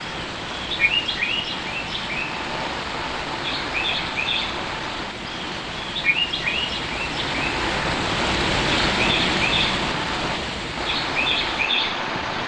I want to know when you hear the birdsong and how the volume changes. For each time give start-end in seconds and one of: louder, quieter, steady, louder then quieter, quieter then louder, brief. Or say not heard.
0.0-12.4 steady.